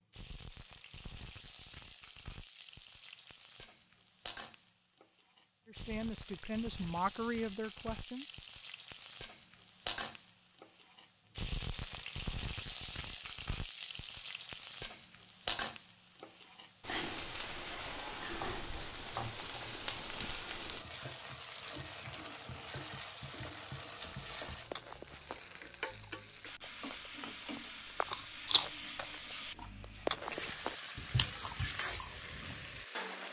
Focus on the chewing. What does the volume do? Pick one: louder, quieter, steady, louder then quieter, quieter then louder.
louder then quieter.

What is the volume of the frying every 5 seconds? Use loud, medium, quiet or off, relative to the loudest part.
medium, medium, loud, loud, loud, loud, loud.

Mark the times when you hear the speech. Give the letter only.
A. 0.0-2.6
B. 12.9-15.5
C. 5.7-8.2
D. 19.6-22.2
C.